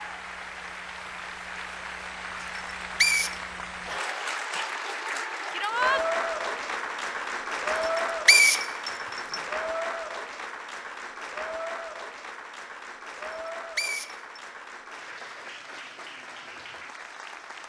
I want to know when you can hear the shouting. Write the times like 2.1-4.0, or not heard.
5.5-6.0.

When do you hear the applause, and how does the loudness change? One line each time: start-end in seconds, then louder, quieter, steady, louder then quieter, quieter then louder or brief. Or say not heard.
0.0-17.6 louder then quieter.